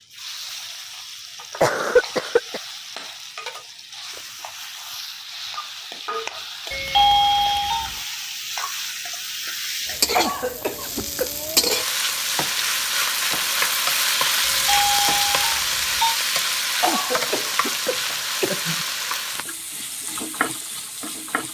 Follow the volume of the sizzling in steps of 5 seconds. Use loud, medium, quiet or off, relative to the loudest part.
quiet, medium, loud, loud, medium.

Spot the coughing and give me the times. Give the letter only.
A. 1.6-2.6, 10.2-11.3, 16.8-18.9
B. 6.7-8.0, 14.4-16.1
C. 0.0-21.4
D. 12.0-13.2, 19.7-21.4
A.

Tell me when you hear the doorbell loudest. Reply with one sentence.
The loudest moment of the doorbell is at 7 seconds.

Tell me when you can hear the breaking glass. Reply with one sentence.
The breaking glass can't be heard in this clip.